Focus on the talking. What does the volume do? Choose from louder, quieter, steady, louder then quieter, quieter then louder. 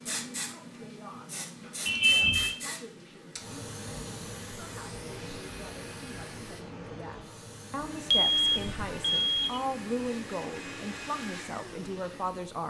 louder.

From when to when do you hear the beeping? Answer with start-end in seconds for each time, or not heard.
1.9-2.5, 8.1-9.6.